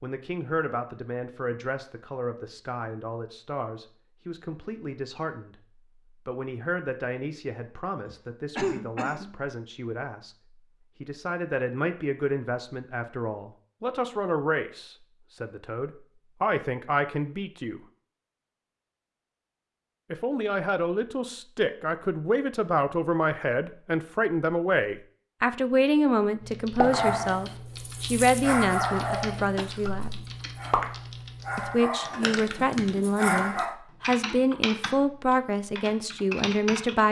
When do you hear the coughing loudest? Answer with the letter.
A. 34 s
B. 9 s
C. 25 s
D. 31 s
B.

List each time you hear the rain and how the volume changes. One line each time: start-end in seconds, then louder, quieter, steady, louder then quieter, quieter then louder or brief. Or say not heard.
not heard.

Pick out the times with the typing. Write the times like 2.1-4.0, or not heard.
26.4-37.0.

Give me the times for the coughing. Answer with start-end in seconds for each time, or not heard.
8.1-9.3, 29.6-30.1.